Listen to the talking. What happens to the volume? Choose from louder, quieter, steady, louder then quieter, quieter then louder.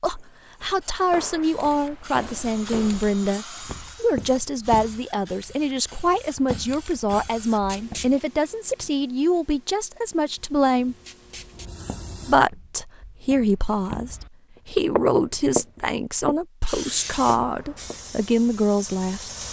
steady.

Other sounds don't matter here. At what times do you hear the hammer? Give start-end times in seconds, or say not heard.
not heard.